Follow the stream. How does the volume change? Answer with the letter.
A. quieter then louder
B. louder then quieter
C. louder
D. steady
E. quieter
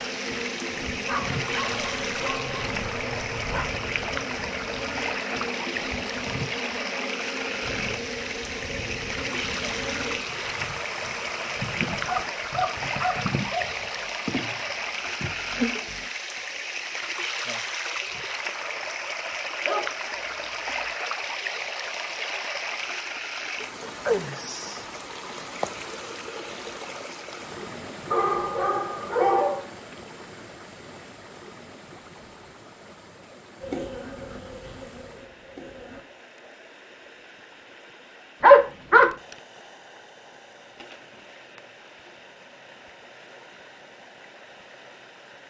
E.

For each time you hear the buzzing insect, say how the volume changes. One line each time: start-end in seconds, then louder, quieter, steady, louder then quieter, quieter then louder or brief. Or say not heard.
0.0-16.1 steady
33.6-36.0 brief.